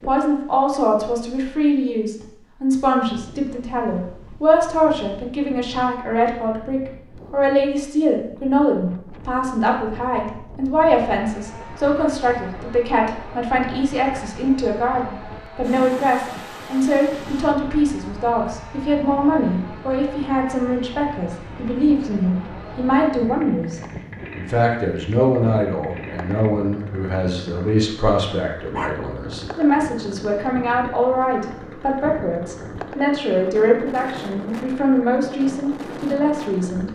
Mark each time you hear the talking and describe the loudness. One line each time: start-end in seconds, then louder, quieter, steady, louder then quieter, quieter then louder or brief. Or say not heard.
0.0-36.8 steady.